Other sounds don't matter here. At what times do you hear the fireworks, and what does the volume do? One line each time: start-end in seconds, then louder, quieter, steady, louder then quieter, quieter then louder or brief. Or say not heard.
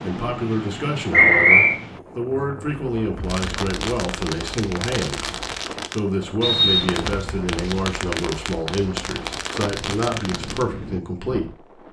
3.2-10.7 steady.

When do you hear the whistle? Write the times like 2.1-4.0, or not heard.
1.1-1.8, 6.4-7.2.